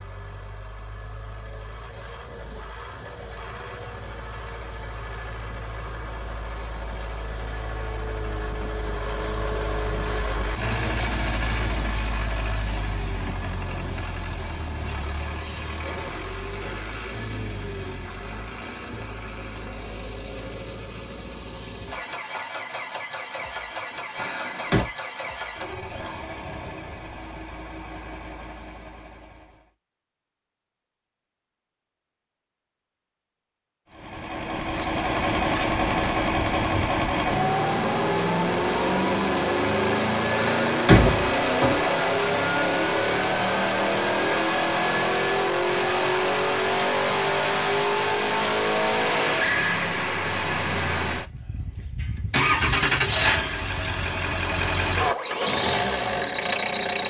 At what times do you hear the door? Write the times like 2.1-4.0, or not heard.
24.1-24.9, 40.4-41.8.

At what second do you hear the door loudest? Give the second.
41 s.